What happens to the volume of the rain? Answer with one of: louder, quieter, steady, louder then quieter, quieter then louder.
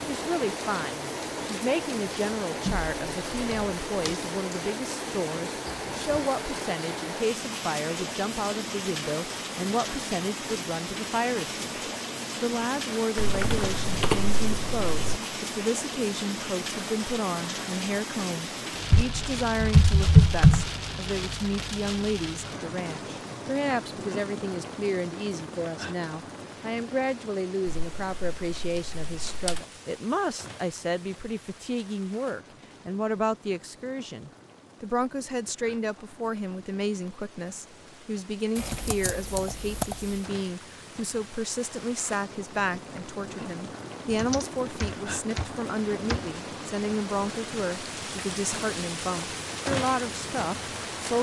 quieter then louder.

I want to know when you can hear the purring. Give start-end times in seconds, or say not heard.
not heard.